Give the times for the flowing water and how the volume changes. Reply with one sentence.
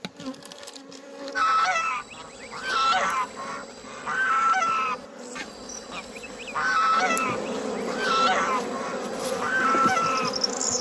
You can't hear the flowing water here.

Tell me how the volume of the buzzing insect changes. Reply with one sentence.
The volume of the buzzing insect goes up.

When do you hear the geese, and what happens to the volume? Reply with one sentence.
The geese can be heard from 1.4 to 10.3 s, getting quieter then louder.